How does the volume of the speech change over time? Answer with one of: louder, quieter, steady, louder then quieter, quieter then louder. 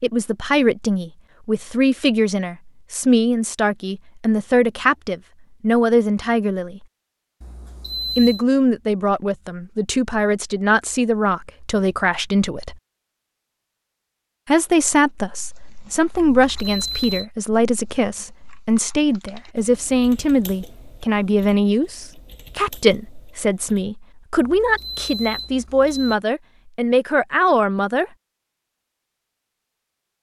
steady.